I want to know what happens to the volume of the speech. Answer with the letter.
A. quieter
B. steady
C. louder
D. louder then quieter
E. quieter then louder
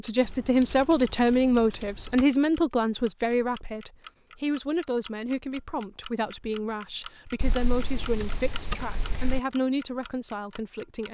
A.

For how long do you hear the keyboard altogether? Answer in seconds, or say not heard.
4 s.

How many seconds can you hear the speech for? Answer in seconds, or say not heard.
11 s.